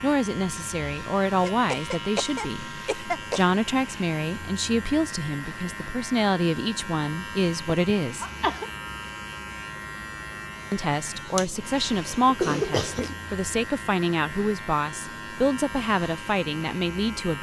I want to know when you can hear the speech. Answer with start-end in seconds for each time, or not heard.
0.0-8.2, 10.7-17.3.